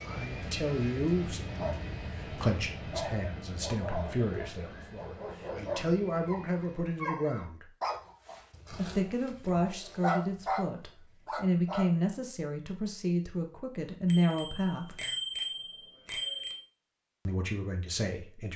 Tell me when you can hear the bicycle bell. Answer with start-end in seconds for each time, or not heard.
14.1-16.6.